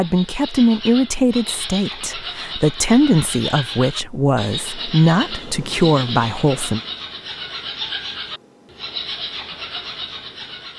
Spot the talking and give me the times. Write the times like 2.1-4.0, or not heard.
0.0-6.8.